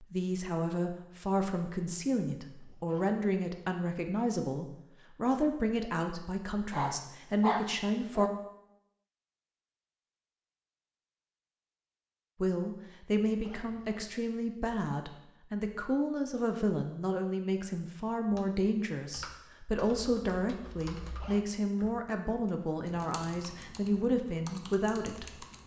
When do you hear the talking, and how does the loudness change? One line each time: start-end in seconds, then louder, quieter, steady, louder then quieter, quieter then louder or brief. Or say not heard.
0.0-8.3 steady
12.4-25.4 steady.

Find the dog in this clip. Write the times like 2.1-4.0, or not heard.
6.7-8.3.